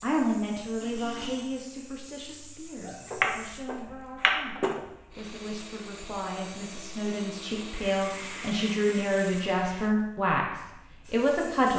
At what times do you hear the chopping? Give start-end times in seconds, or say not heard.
2.9-4.8.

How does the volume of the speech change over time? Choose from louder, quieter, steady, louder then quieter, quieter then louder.
quieter then louder.